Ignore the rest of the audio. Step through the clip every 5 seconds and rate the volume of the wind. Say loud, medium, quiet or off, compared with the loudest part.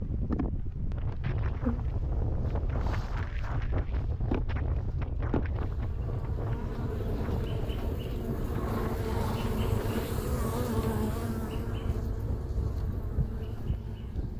loud, loud, medium.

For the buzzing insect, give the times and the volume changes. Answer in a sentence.
The buzzing insect can be heard from 0.0 to 14.3 s, getting louder then quieter.